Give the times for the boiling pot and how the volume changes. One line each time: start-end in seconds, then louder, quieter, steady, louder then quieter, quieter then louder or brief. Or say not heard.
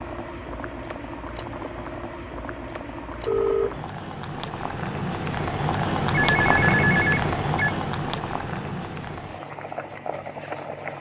0.0-10.9 louder then quieter.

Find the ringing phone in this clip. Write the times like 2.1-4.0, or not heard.
3.2-3.8, 6.1-7.8.